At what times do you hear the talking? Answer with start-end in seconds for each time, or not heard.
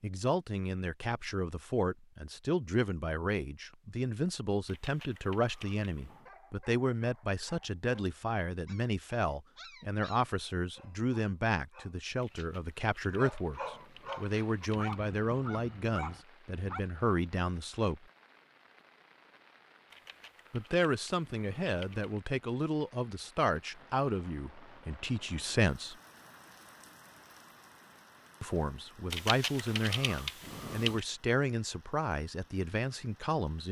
0.0-18.0, 20.5-25.9, 28.4-33.6.